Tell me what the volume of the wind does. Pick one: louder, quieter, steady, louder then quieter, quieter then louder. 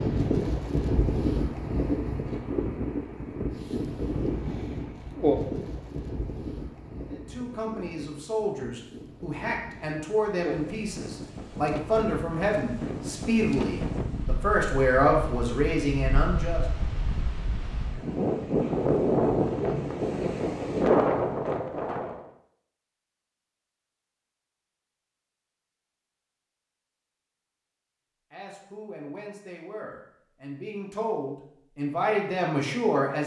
quieter then louder.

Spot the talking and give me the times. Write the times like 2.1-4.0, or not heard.
7.1-16.6, 28.3-33.2.